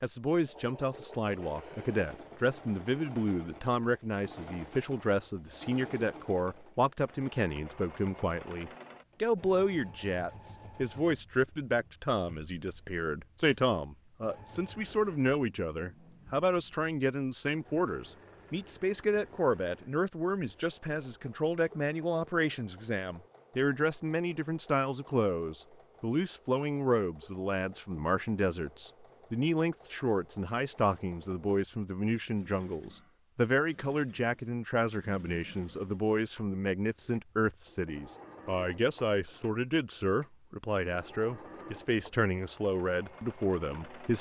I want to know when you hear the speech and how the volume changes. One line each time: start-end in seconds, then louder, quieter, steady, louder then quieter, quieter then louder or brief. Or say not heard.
0.0-44.1 steady.